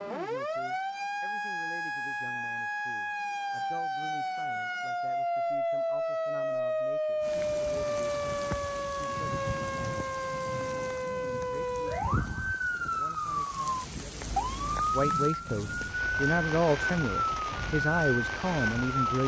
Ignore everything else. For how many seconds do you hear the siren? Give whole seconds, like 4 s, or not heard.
19 s.